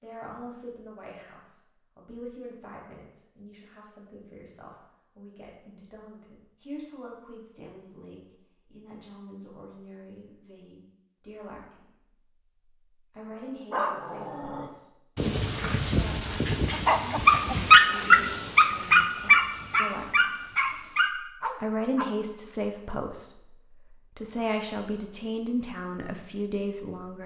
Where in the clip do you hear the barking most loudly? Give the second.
18 s.